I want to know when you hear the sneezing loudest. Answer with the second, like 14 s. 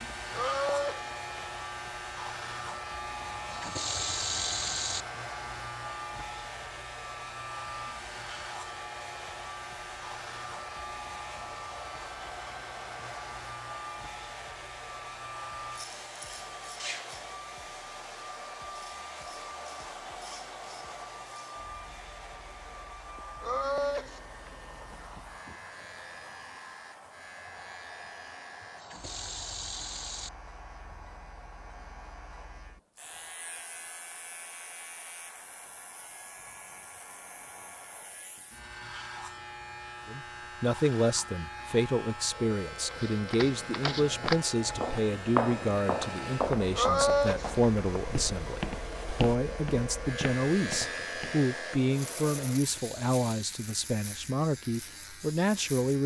47 s.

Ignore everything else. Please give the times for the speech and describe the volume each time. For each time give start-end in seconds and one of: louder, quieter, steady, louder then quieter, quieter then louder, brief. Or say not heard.
40.0-56.0 steady.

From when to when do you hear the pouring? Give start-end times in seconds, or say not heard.
3.3-5.0, 28.6-30.3, 52.5-53.5.